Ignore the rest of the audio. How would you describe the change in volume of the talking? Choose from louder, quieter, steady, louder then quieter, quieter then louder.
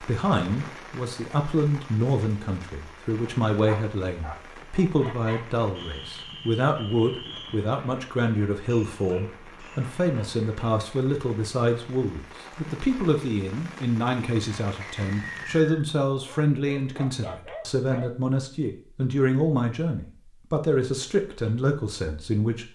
steady.